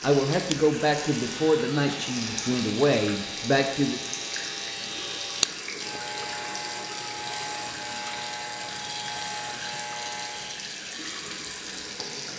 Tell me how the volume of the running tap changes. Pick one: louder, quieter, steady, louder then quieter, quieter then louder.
steady.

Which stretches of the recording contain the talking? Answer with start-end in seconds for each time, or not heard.
0.0-4.0.